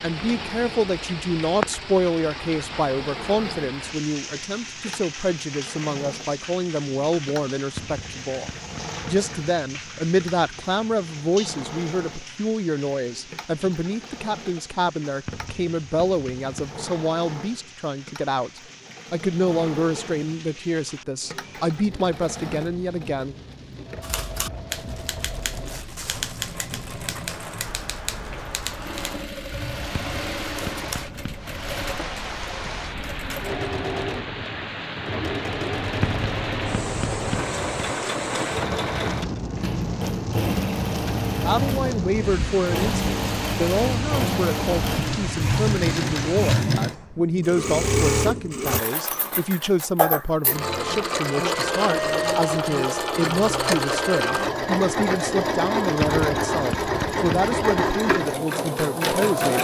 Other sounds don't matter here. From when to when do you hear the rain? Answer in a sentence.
The rain can be heard from 0.0 to 46.6 s.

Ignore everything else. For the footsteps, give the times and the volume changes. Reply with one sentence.
You can't hear the footsteps here.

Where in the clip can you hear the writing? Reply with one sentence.
You can hear the writing from 7.8 to 9.3 s, from 15.2 to 16.8 s, from 29.9 to 31.9 s, from 36.0 to 38.0 s and from 56.0 to 57.9 s.